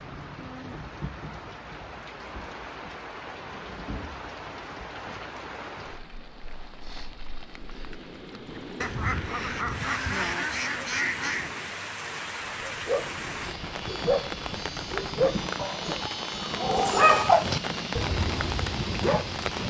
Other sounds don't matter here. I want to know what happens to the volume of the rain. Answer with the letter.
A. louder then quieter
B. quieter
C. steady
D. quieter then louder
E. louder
E.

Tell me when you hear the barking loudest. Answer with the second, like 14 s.
17 s.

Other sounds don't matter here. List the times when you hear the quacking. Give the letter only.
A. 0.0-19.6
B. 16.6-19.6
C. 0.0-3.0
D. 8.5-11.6
D.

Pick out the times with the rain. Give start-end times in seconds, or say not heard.
0.0-19.6.